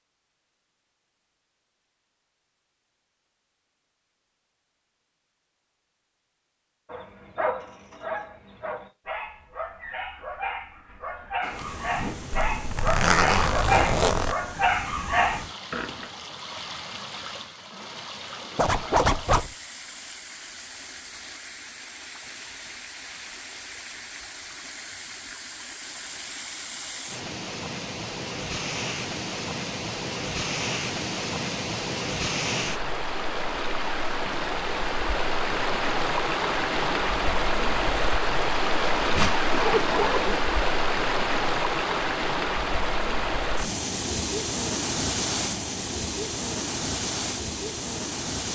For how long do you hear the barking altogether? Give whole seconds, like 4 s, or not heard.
9 s.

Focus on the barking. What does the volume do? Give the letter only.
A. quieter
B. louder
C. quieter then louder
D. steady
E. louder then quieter
B.